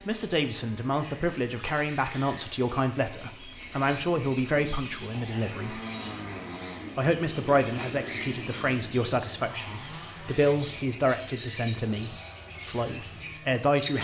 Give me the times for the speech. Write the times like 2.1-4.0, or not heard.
0.1-5.8, 7.0-13.9.